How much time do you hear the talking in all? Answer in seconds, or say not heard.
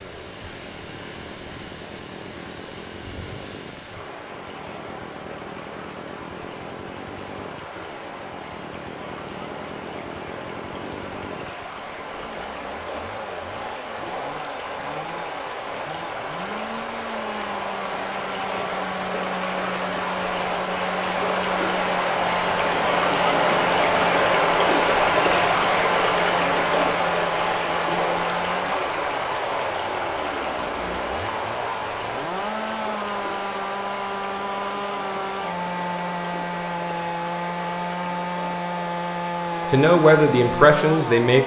2 s.